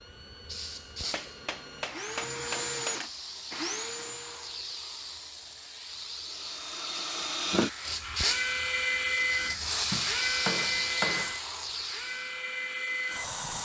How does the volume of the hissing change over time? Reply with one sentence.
The volume of the hissing goes up.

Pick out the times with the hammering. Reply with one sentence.
The hammering can be heard from 1.1 to 3.0 s and from 9.5 to 11.3 s.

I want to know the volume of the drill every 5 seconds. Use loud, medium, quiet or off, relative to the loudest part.
medium, loud, loud.